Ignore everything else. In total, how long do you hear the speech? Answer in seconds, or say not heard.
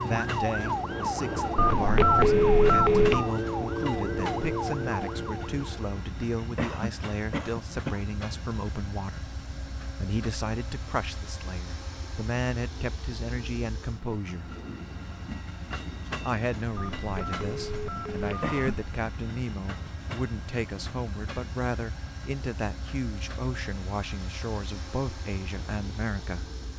25 s.